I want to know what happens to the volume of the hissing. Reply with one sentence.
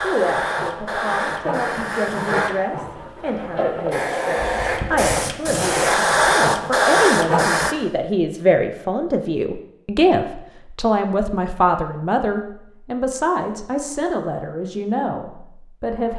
The volume of the hissing goes up.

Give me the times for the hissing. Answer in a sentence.
The hissing can be heard from 0.0 to 7.8 s.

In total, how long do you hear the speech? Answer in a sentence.
The speech can be heard for 16 seconds in total.